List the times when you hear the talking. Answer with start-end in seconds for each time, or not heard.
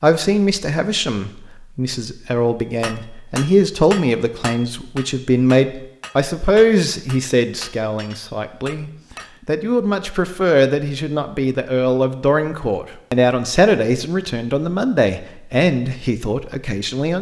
0.0-17.1.